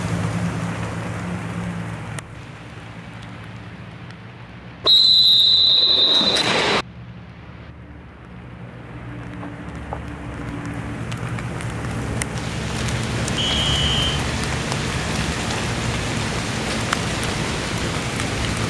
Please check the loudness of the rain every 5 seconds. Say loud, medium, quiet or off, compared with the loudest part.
medium, quiet, loud, loud.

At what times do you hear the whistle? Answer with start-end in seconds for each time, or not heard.
4.8-6.8, 13.3-14.1.